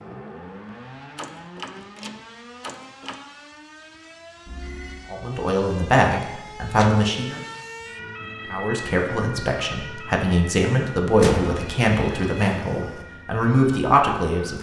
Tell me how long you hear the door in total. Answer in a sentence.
The door can be heard for 3 seconds in total.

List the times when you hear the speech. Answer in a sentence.
You can hear the speech from 5.1 to 7.4 s and from 8.5 to 14.5 s.